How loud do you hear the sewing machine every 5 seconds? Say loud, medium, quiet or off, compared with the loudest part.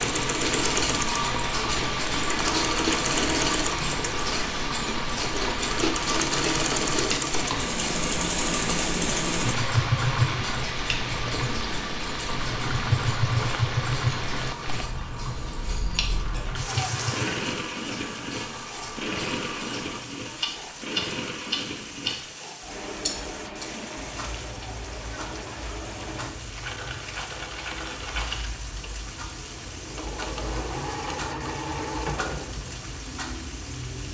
loud, loud, loud, medium, medium, medium, medium.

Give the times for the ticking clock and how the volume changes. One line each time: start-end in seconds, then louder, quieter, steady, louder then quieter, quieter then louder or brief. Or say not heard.
0.0-34.0 quieter.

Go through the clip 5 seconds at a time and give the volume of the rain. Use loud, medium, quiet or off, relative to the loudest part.
loud, loud, loud, medium, medium, medium, medium.